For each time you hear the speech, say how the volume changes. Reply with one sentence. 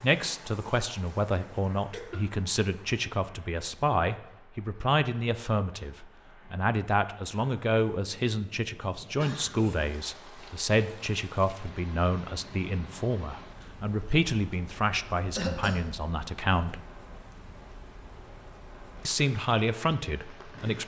You can hear the speech from 0.0 to 16.8 s, at a steady volume; and briefly from 19.1 to 20.8 s.